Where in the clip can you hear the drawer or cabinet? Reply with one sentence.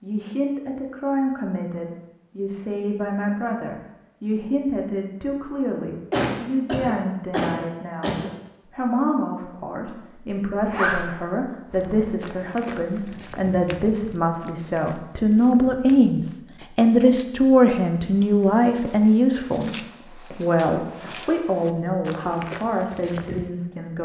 You can't hear the drawer or cabinet here.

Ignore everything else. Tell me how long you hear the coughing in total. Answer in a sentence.
The coughing can be heard for 2 seconds in total.